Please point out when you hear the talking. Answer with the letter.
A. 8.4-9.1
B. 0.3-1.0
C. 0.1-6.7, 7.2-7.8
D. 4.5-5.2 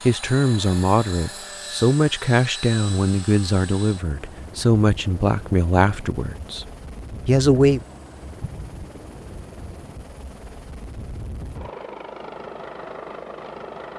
C.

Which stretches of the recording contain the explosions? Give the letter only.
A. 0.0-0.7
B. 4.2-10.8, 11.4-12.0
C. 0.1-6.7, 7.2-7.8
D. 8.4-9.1
D.